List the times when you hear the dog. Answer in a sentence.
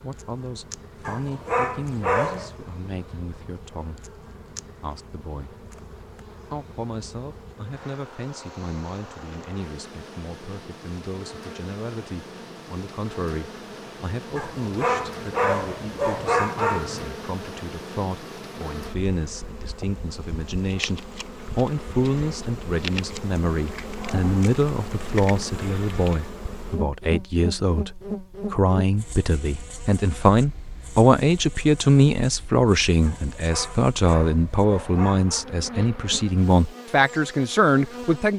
The dog can be heard from 1.1 to 2.5 s, from 14.3 to 17.1 s and from 33.0 to 35.5 s.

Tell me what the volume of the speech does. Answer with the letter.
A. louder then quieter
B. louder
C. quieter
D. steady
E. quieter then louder
B.